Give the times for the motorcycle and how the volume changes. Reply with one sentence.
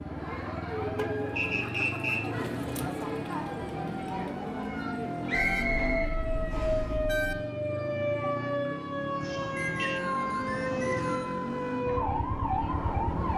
The motorcycle can be heard from 0.0 to 13.3 s, at a steady volume.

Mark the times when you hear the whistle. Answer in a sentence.
You can hear the whistle from 1.4 to 2.2 s, from 5.2 to 6.8 s and from 9.6 to 11.3 s.